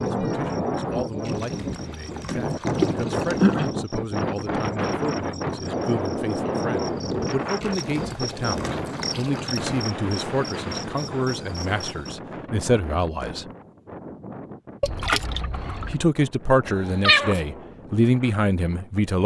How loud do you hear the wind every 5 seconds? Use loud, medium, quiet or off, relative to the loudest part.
loud, loud, medium, quiet.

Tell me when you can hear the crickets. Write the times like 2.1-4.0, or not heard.
0.0-12.2.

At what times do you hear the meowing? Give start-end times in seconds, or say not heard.
16.6-17.4.